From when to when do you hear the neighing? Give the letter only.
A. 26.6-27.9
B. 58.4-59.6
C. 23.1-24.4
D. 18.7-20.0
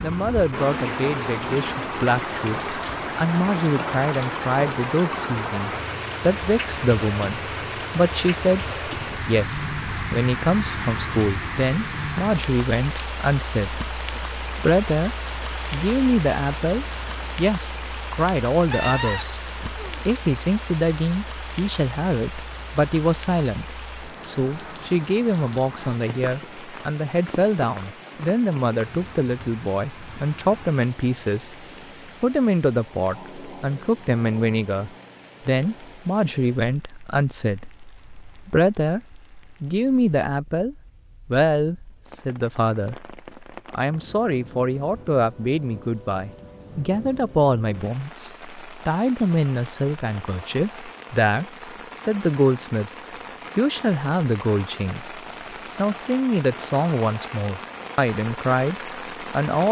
D.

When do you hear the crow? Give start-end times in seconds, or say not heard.
not heard.